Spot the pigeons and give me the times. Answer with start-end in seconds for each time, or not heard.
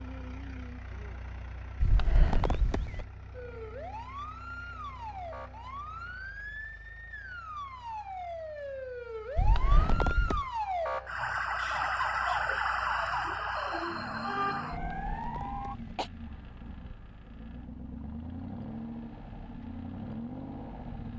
not heard.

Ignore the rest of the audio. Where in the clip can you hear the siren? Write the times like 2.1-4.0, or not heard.
3.3-15.8.